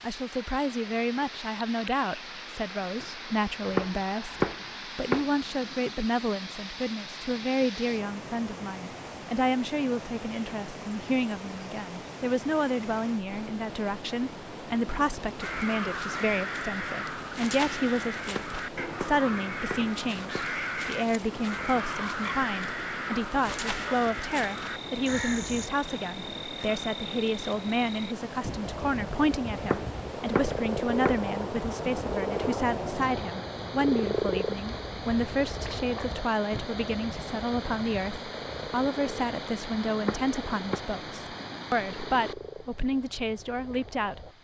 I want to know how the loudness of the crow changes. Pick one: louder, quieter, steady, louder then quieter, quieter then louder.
steady.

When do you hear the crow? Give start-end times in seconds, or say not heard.
15.4-25.7.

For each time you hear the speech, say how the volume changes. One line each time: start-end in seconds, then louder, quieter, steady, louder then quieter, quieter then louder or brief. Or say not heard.
0.0-44.3 steady.